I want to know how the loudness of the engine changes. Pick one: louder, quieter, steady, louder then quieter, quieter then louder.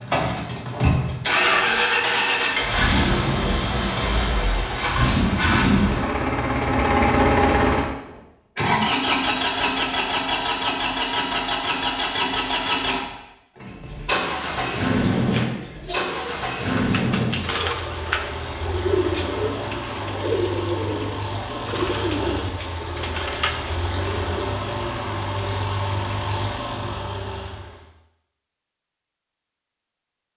quieter.